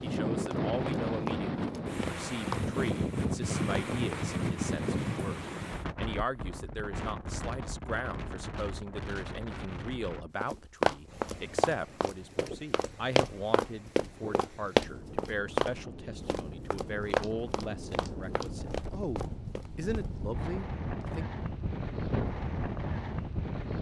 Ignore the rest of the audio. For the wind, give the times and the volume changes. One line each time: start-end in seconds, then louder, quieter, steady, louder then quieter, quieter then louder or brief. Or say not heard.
0.0-23.7 quieter then louder.